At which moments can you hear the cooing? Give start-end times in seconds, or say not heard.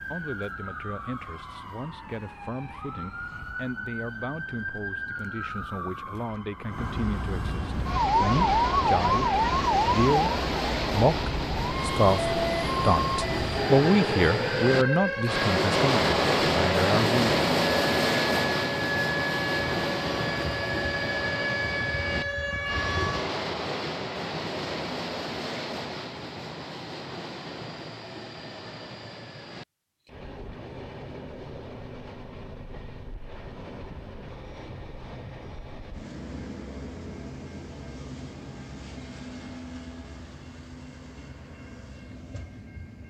not heard.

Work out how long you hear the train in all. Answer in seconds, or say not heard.
35 s.